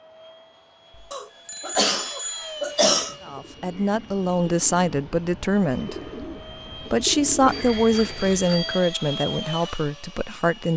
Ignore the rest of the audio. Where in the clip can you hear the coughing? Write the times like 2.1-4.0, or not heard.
1.1-3.1, 7.5-8.2.